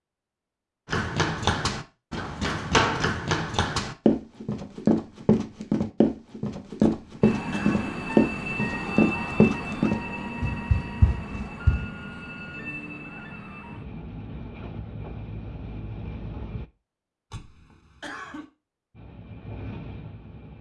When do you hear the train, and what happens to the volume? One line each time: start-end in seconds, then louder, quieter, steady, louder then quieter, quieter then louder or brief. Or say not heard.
7.2-16.7 quieter
18.9-20.5 brief.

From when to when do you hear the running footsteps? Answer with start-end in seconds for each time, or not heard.
0.9-11.9.